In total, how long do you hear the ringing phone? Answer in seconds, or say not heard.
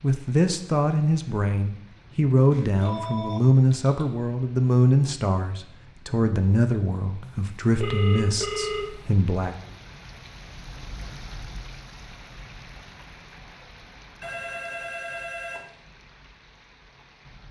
5 s.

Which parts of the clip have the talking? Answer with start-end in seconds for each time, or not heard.
0.0-9.6.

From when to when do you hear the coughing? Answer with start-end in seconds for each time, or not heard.
not heard.